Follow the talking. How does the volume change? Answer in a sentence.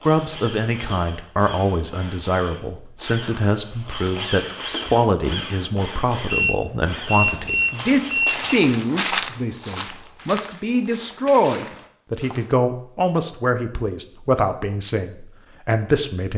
The loudness of the talking stays about the same.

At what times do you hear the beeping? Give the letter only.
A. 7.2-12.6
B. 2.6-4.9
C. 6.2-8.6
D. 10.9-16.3
C.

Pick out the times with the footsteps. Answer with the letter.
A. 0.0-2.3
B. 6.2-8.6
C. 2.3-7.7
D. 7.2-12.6
D.